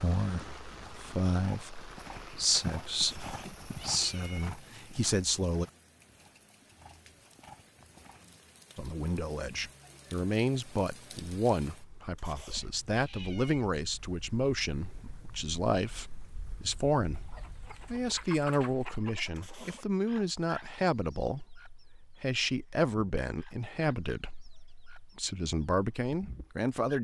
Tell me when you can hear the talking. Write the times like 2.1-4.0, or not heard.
0.0-5.7, 8.8-27.0.